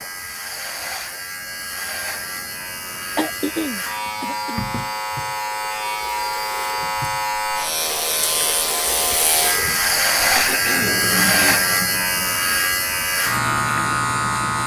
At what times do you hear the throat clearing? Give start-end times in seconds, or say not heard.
3.1-4.7, 10.3-11.6.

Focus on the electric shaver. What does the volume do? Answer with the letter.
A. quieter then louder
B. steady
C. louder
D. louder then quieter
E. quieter
C.